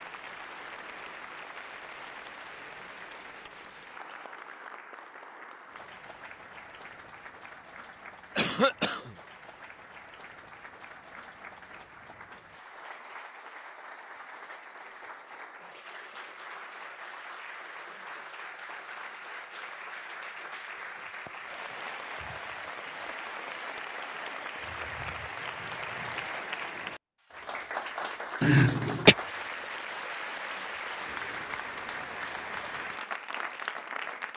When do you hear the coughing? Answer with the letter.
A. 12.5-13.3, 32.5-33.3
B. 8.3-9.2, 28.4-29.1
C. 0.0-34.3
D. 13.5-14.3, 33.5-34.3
B.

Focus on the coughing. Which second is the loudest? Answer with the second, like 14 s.
29 s.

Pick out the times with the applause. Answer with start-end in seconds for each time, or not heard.
0.0-34.3.